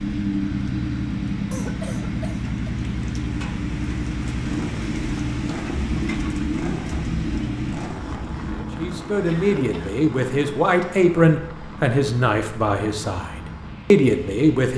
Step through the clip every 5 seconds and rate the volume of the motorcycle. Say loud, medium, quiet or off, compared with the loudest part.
loud, loud, quiet.